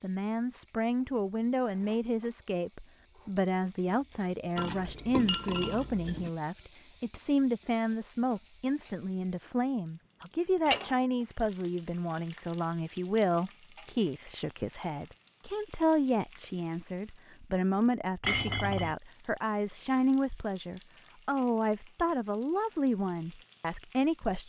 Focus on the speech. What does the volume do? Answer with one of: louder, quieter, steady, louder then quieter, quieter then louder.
steady.